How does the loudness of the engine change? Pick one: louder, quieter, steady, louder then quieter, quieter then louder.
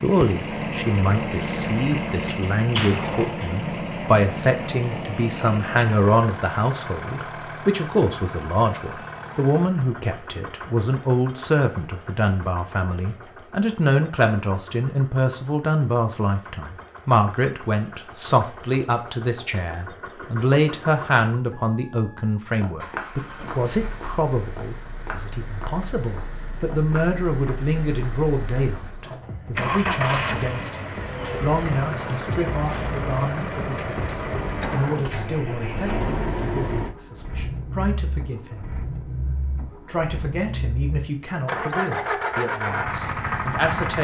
quieter then louder.